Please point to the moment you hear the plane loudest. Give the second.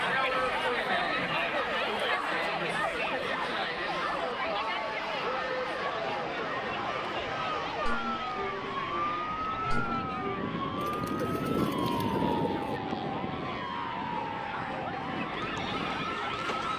12 s.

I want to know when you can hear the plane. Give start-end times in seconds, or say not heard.
0.1-16.7.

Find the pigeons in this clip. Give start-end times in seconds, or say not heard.
10.8-12.8.